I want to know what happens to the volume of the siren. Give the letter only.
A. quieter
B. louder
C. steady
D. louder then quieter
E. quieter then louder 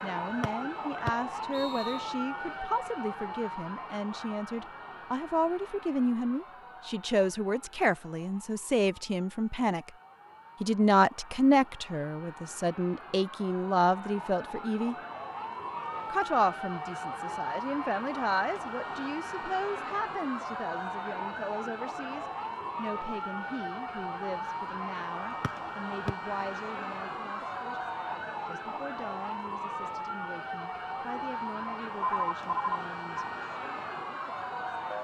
E.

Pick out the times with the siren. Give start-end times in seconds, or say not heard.
0.0-34.9.